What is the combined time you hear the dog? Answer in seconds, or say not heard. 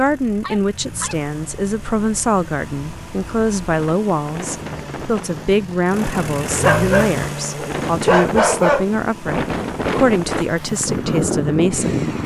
3 s.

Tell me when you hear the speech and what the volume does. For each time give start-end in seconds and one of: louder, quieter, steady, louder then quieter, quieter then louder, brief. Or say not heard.
0.0-12.0 steady.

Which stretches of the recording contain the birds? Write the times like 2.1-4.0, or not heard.
not heard.